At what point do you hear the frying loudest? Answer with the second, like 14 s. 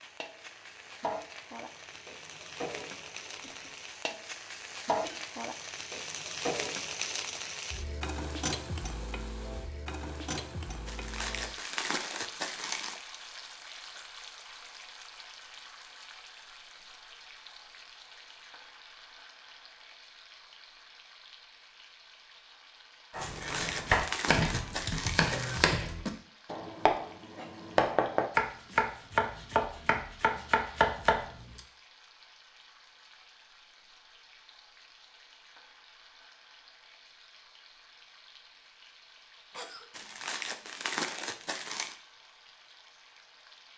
7 s.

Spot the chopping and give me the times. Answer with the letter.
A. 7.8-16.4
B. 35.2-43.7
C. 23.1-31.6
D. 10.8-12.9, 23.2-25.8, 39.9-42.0
C.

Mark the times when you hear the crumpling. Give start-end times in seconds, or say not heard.
10.8-12.9, 23.2-25.8, 39.9-42.0.